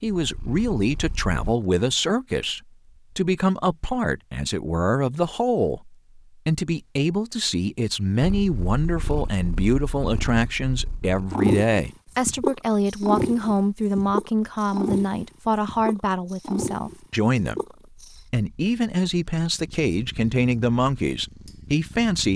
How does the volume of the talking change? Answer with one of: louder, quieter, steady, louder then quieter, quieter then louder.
steady.